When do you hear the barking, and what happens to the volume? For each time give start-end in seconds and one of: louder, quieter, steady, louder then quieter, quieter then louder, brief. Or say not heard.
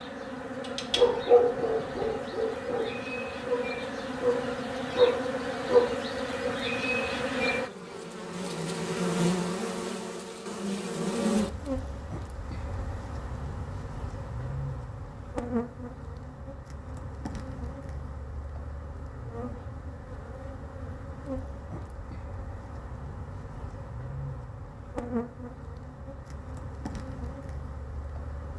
0.8-5.9 quieter then louder.